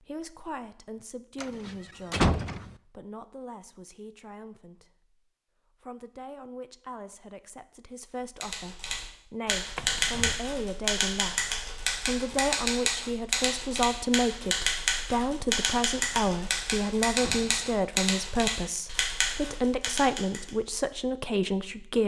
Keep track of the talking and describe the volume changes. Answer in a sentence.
The volume of the talking goes up.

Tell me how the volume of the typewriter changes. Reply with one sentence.
The loudness of the typewriter stays about the same.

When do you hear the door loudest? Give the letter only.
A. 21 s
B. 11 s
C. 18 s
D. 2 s
D.